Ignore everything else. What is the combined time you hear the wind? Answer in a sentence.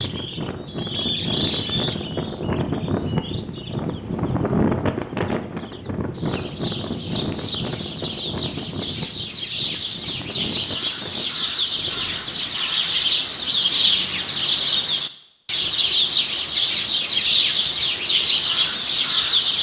You can hear the wind for 13 seconds altogether.